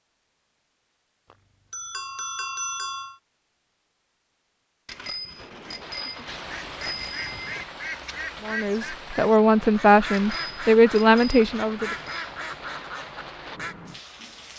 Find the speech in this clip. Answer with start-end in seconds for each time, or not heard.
8.4-11.9.